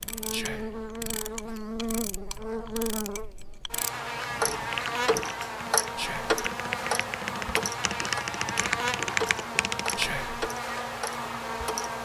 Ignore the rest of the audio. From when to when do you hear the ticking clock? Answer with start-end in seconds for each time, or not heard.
0.0-11.9.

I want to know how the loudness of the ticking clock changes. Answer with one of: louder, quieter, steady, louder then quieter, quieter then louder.
louder then quieter.